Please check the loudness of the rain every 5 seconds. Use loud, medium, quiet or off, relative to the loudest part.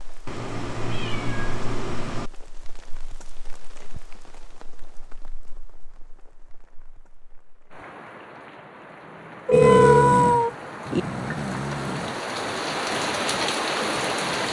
quiet, quiet, loud.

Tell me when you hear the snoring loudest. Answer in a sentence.
The loudest moment of the snoring is at 10 seconds.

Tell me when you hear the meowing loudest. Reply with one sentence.
The volume of the meowing peaks at 10 seconds.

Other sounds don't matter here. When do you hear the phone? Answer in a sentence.
You can hear the phone from 9.5 to 10.1 s.